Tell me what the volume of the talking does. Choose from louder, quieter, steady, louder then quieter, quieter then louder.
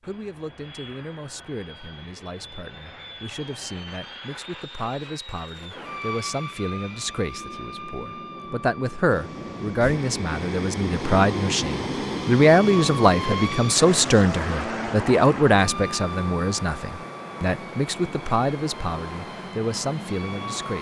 louder then quieter.